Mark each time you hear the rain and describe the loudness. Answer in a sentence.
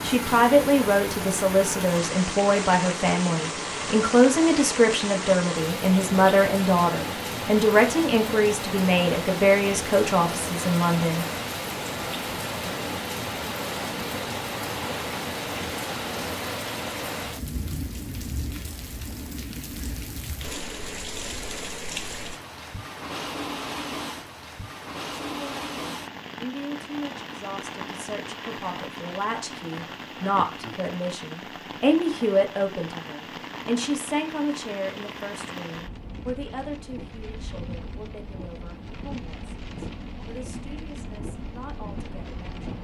You can hear the rain from 0.0 to 42.7 s, getting quieter.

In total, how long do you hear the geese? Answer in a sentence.
You can't hear the geese here.